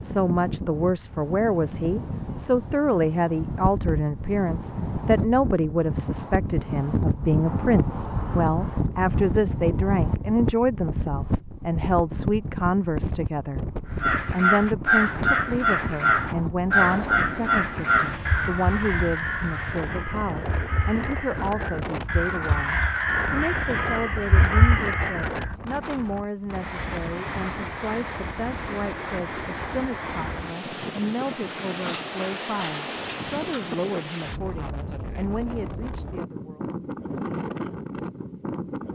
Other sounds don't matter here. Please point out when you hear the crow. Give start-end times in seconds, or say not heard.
13.9-25.6.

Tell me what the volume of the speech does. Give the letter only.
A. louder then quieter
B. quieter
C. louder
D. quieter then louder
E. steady
B.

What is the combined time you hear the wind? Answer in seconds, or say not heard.
39 s.